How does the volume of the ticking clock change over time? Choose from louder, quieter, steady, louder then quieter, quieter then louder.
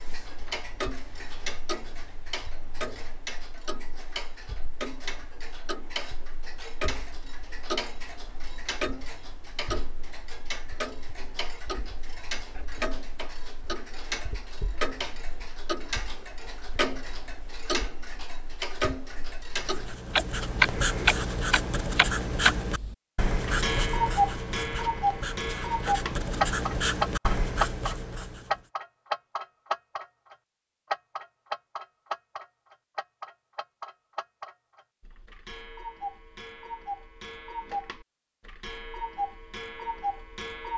louder then quieter.